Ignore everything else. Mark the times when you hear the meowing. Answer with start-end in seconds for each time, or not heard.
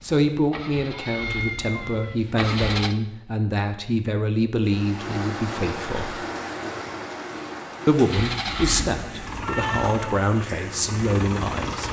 0.9-2.1, 8.9-10.2.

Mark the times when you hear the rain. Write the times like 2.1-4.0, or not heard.
4.6-11.8.